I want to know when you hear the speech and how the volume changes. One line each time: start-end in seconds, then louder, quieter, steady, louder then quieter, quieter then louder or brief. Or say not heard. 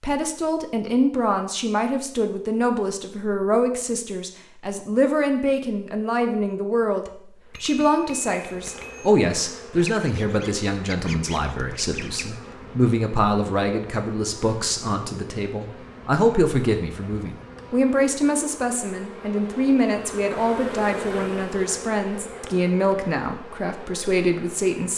0.0-24.9 steady.